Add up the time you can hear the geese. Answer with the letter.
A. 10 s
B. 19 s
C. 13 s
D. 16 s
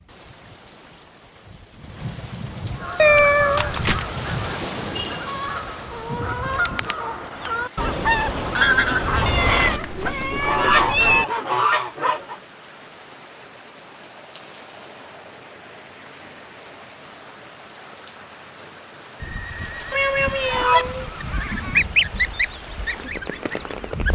C.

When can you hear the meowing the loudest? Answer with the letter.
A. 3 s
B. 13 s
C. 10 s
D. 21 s
A.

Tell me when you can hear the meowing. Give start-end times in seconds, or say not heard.
3.0-4.0, 9.2-11.2, 19.9-21.8.